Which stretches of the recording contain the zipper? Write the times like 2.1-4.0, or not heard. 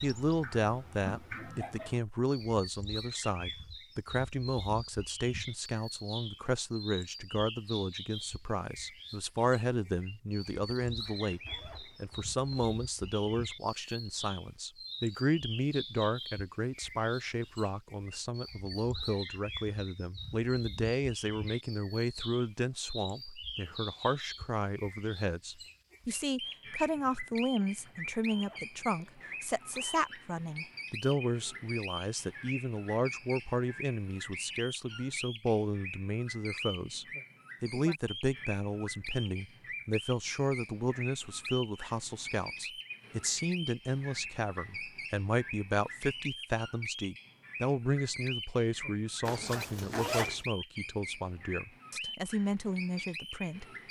10.8-12.7, 27.6-30.2, 49.2-50.4.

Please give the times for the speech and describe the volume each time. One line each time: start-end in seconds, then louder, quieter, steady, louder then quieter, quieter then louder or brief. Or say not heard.
0.0-53.6 steady.